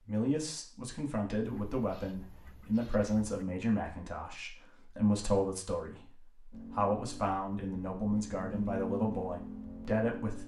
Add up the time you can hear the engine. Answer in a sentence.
The engine can be heard for 4 seconds in total.